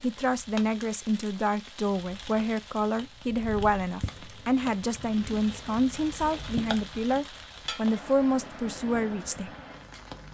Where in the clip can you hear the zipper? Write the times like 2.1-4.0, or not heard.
not heard.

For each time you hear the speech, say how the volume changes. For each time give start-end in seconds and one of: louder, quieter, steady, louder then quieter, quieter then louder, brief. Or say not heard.
0.0-9.5 steady.